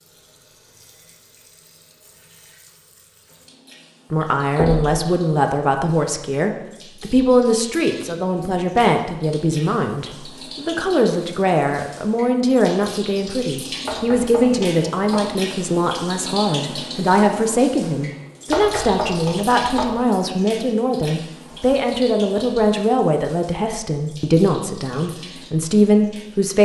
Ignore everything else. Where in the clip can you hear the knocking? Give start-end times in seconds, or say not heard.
4.5-5.0, 13.8-15.3, 18.5-20.0.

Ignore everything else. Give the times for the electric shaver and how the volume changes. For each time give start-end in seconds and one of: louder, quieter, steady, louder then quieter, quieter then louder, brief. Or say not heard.
not heard.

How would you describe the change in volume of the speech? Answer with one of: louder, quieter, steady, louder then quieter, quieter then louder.
steady.